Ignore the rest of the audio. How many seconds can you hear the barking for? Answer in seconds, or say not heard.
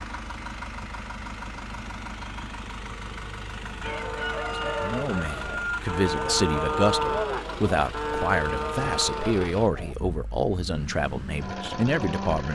not heard.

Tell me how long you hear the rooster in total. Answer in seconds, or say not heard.
2 s.